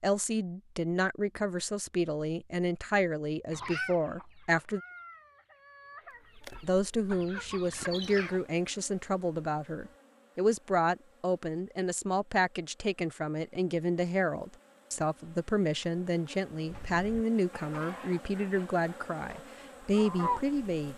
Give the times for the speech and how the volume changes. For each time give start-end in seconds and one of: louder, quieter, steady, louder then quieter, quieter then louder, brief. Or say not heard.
0.0-4.8 steady
6.6-20.9 steady.